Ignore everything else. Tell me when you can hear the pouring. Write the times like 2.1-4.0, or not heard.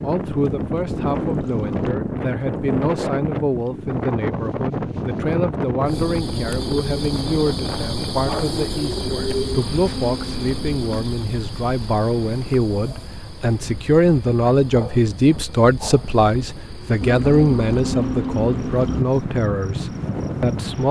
1.1-1.9, 9.2-10.8, 17.0-19.0.